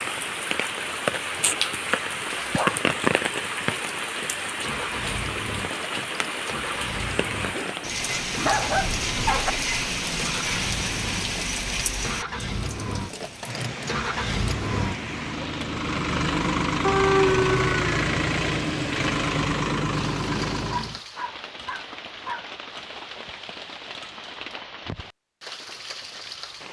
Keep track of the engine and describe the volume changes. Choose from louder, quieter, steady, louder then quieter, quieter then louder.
louder.